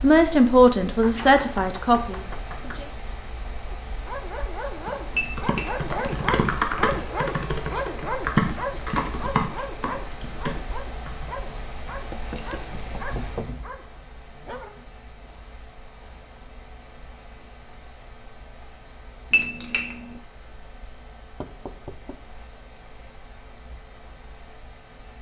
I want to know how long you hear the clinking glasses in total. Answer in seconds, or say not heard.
2 s.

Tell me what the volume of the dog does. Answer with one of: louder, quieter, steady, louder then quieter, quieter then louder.
quieter.